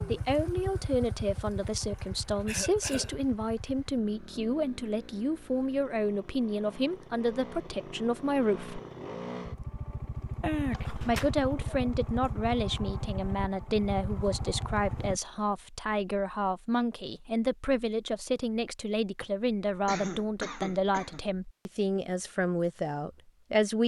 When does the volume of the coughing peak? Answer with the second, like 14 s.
11 s.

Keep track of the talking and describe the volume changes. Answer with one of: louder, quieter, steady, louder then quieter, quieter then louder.
steady.